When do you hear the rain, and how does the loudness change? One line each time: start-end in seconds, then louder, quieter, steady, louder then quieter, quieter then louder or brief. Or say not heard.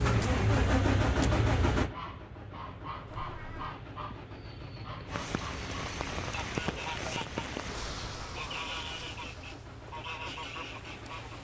5.0-11.3 quieter.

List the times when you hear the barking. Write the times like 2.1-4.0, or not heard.
not heard.